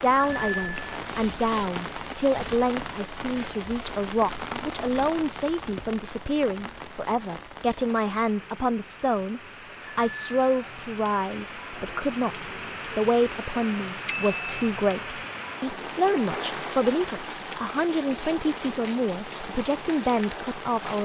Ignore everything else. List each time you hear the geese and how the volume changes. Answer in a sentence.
You can't hear the geese here.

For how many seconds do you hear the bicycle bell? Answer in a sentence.
The bicycle bell can be heard for 2 seconds in total.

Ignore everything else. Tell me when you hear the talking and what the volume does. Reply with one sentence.
You can hear the talking from 0.0 to 21.0 s, at a steady volume.